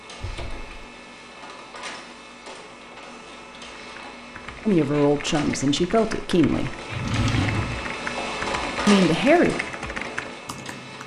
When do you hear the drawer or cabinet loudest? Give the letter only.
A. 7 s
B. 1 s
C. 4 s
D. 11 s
A.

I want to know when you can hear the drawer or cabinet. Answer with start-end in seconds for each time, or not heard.
0.2-0.7, 6.9-7.8.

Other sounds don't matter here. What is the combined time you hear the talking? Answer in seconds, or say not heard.
3 s.